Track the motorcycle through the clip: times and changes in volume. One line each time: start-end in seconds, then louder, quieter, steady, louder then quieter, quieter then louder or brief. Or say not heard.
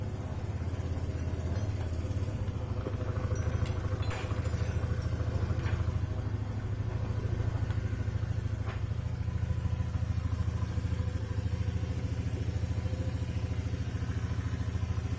0.0-15.1 steady.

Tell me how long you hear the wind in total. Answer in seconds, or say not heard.
8 s.